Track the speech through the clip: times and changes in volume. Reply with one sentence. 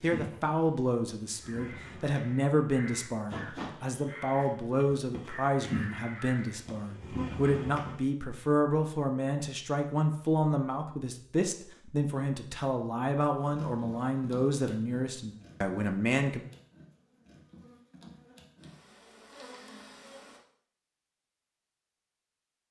The speech can be heard from 0.0 to 16.4 s, at a steady volume.